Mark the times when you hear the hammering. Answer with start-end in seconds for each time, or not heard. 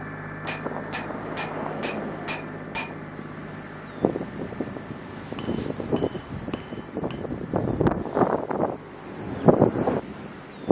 0.5-3.0, 5.3-7.2.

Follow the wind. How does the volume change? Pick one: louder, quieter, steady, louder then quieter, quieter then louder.
louder.